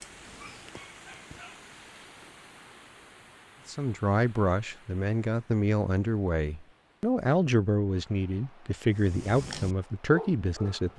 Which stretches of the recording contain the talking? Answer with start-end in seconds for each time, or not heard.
3.6-10.9.